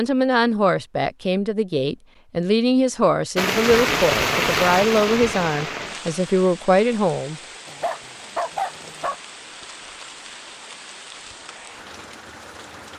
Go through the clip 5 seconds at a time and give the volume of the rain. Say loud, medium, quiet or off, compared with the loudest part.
loud, quiet, quiet.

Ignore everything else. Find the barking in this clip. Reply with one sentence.
You can hear the barking from 7.7 to 9.2 s.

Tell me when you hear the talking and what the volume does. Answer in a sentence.
The talking can be heard from 0.0 to 7.4 s, at a steady volume.